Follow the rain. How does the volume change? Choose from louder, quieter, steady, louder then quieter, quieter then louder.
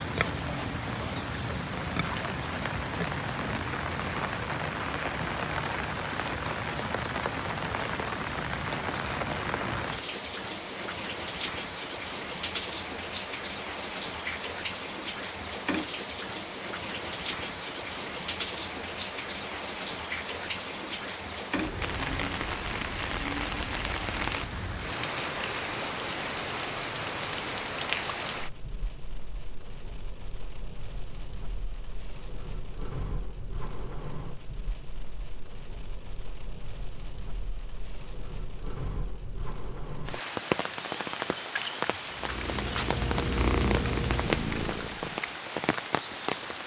quieter then louder.